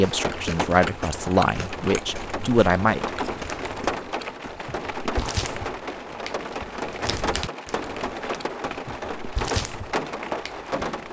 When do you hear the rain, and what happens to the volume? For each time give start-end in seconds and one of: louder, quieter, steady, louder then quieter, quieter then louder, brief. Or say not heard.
0.0-11.0 steady.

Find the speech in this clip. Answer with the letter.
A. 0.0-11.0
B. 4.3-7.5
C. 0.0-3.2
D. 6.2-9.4
C.